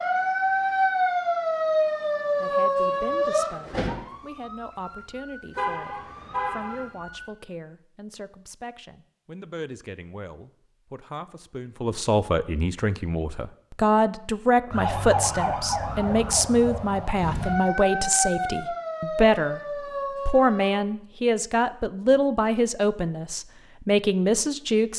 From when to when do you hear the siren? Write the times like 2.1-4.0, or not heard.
0.0-7.3, 14.7-20.7.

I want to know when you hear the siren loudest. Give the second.
1 s.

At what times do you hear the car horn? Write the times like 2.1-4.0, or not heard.
5.5-6.8.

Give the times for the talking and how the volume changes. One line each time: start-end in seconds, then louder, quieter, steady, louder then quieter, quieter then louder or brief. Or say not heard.
2.4-24.9 louder.